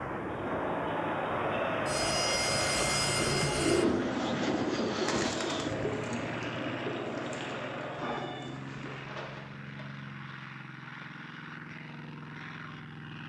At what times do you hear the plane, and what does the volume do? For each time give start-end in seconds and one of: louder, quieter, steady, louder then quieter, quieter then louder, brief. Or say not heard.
0.0-13.2 quieter.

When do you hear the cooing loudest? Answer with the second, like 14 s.
4 s.